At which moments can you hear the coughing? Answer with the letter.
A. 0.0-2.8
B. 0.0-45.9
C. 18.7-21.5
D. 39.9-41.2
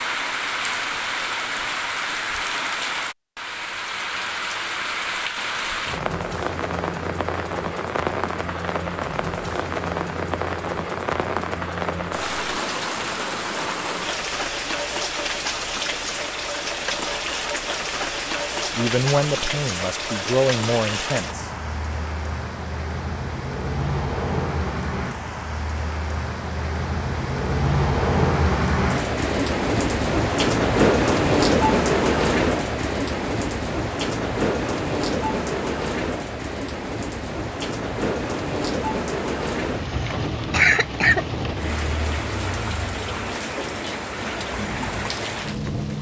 D.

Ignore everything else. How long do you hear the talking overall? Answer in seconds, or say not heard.
3 s.